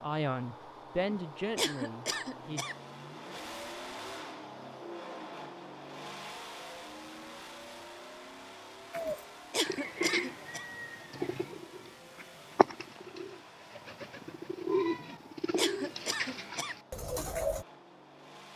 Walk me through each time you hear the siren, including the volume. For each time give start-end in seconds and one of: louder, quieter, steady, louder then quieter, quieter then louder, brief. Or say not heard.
not heard.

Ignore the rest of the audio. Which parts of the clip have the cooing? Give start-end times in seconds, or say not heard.
8.9-17.6.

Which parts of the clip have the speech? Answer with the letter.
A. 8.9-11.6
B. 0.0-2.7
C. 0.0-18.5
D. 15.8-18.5
B.